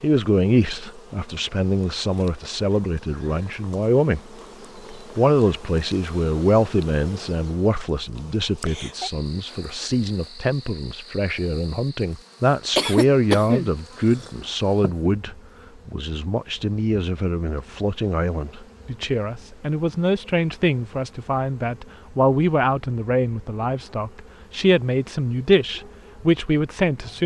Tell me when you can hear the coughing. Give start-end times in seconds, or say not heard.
12.8-14.9.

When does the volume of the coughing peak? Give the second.
13 s.